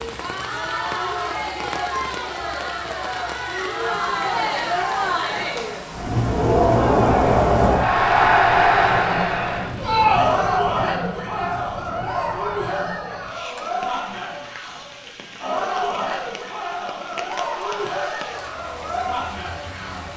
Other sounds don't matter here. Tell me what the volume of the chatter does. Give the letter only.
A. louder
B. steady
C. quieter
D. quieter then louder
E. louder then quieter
E.